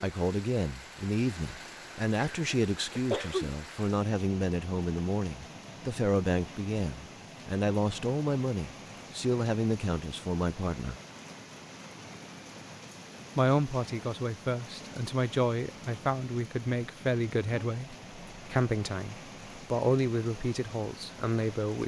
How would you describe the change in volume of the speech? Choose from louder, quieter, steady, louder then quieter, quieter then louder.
steady.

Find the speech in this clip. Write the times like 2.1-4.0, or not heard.
0.0-10.9, 13.3-21.8.